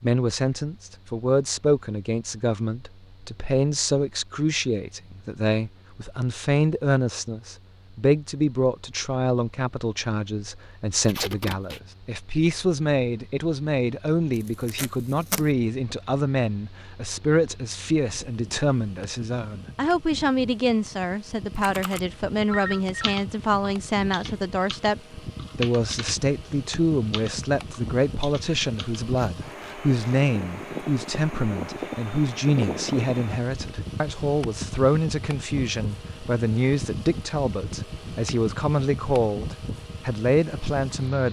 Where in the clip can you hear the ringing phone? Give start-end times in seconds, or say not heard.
22.5-23.2.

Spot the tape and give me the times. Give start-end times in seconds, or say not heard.
11.0-11.8, 14.7-15.4, 29.1-30.2.